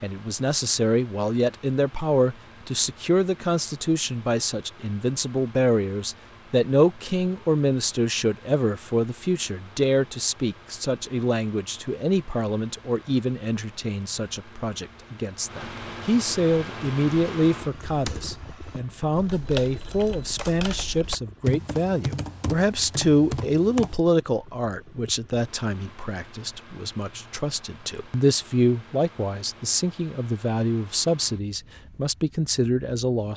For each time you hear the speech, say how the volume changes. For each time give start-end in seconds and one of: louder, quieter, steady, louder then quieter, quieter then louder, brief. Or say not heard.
0.0-33.3 steady.